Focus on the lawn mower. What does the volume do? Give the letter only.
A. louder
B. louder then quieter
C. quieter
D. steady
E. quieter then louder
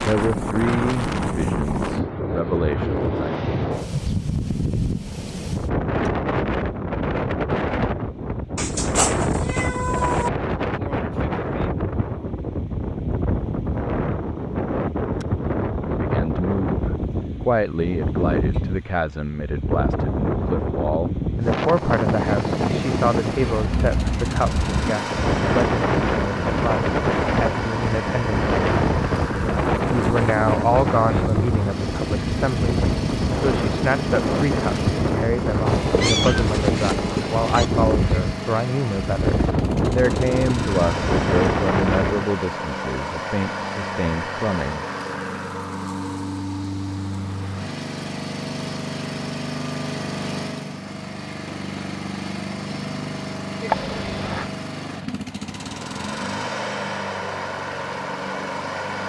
D.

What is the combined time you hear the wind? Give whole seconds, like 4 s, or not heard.
42 s.